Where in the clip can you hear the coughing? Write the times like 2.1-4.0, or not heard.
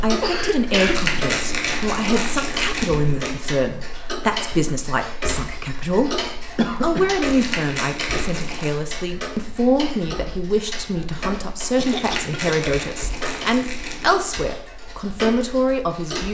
0.1-1.0, 6.5-7.1, 11.8-12.6.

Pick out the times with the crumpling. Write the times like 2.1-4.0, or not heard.
0.8-3.4, 7.2-8.8, 11.8-14.2.